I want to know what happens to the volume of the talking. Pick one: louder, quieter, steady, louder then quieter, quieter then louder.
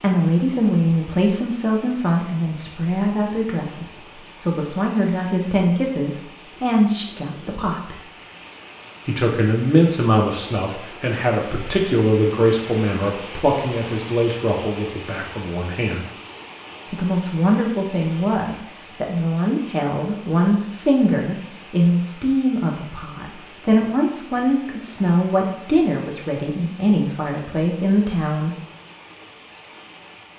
steady.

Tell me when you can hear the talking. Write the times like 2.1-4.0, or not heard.
0.0-8.0, 9.1-16.1, 16.9-28.6.